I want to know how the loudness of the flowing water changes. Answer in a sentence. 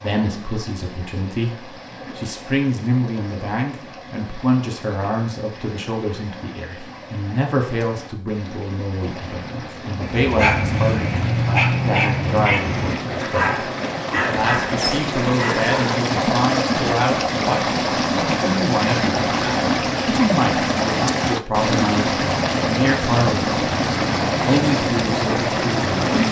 The loudness of the flowing water goes up.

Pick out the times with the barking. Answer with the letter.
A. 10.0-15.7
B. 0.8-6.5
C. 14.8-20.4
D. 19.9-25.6
A.